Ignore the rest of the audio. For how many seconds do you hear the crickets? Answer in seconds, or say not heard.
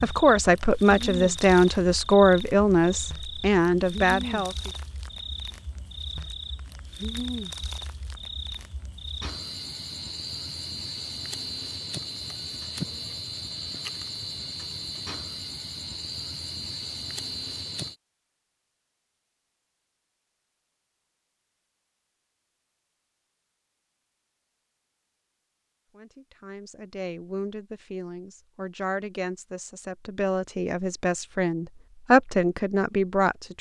18 s.